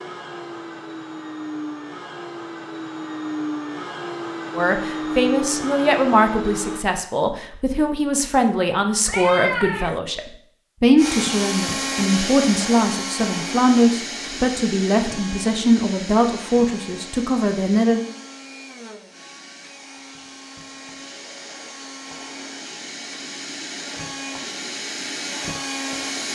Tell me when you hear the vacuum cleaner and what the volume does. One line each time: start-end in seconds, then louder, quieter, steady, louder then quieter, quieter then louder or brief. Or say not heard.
0.0-6.8 louder
10.9-26.3 quieter then louder.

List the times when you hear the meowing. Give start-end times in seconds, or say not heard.
9.1-10.0.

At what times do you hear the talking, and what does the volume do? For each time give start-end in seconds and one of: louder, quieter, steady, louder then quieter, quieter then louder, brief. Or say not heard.
4.5-18.0 steady.